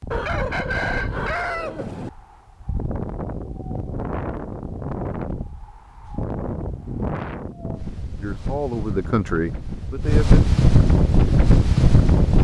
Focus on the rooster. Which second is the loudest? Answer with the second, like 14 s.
1 s.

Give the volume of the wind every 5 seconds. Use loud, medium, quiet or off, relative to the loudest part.
quiet, quiet, loud.